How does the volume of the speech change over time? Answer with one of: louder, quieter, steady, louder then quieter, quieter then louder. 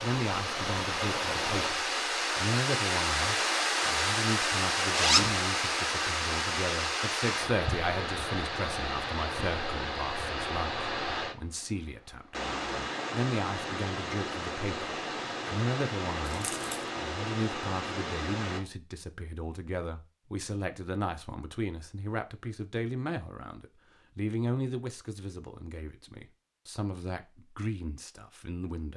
steady.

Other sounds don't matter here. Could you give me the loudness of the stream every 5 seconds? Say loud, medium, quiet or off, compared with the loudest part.
loud, loud, medium, medium, off, off.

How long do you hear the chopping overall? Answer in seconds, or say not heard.
not heard.